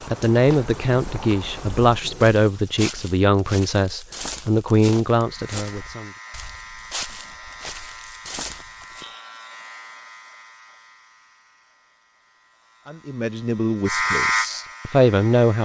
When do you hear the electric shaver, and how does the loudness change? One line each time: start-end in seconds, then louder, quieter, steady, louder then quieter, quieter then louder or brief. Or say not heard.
5.3-15.5 quieter then louder.